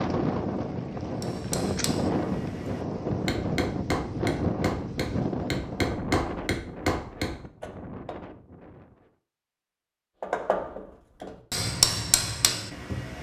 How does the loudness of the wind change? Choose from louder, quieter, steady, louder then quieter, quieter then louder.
quieter.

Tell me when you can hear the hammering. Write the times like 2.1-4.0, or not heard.
1.2-8.2, 10.2-13.1.